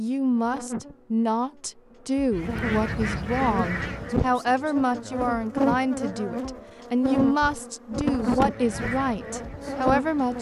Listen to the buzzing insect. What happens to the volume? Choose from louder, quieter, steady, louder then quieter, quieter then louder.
louder.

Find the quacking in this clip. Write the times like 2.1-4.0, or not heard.
2.3-4.2, 8.4-10.3.